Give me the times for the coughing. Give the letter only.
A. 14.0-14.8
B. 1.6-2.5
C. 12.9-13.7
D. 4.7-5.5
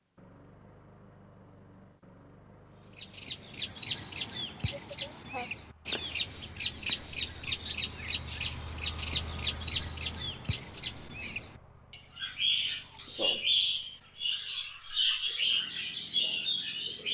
D.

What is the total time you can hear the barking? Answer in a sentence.
The barking can't be heard in this clip.